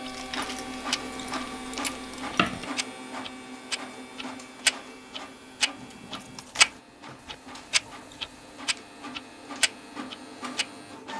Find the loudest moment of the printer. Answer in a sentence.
The volume of the printer peaks at 1 second.